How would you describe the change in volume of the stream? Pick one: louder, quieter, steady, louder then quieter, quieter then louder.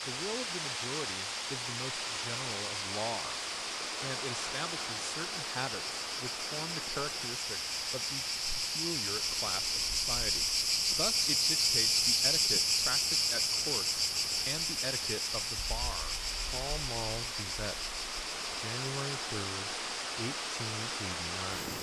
quieter then louder.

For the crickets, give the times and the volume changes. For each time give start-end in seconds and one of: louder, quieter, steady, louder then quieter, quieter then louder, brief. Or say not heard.
0.0-21.7 louder then quieter.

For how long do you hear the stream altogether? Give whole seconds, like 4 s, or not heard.
22 s.